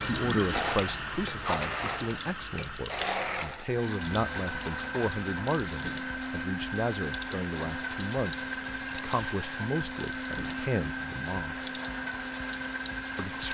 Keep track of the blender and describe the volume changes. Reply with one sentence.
The volume of the blender stays about the same.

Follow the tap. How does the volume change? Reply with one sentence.
The volume of the tap goes down.